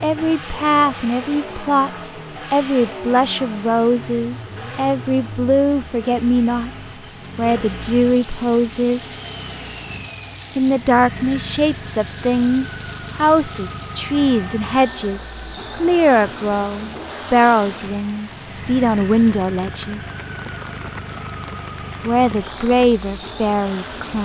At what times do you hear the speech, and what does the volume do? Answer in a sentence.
The speech can be heard from 0.0 to 9.1 s, at a steady volume; from 10.6 to 20.0 s, at a steady volume; and briefly from 22.0 to 24.2 s.